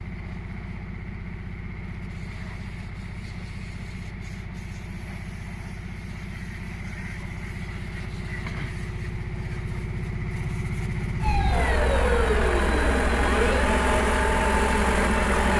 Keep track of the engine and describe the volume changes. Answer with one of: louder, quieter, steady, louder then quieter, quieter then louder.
louder.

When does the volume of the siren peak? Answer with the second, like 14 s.
12 s.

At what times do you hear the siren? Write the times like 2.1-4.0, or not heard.
11.2-15.5.